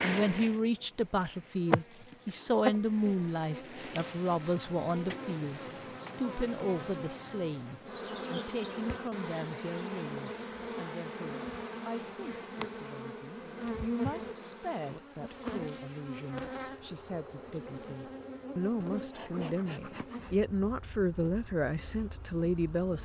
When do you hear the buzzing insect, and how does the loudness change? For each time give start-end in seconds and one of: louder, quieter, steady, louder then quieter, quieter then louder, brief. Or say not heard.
0.0-23.0 quieter.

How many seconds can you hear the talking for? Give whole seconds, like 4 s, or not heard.
23 s.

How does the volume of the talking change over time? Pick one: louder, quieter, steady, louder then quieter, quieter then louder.
quieter then louder.